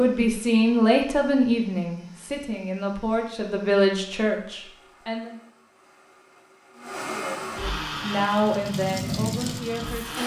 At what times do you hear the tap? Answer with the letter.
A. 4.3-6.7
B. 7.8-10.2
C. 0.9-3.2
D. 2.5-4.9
B.